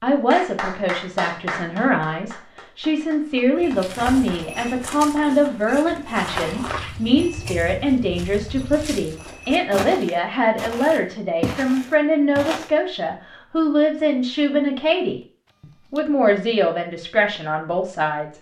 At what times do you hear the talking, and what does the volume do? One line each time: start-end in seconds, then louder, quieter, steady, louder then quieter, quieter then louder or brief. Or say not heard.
0.0-18.3 steady.